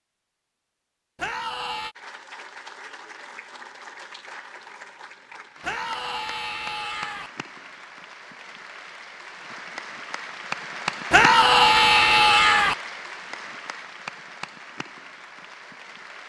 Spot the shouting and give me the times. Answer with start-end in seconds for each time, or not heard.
1.1-1.9, 5.6-7.3, 11.1-12.8.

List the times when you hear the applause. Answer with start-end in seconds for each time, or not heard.
1.9-16.2.